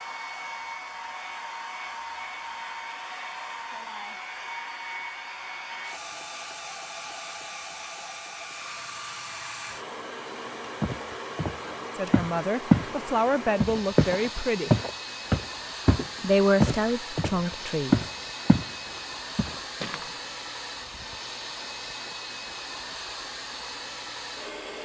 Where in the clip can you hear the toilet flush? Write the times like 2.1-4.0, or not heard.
not heard.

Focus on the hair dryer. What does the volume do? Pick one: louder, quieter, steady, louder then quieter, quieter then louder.
steady.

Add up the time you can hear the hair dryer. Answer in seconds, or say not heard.
25 s.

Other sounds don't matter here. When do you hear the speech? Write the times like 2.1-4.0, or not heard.
11.9-14.7, 16.2-18.1.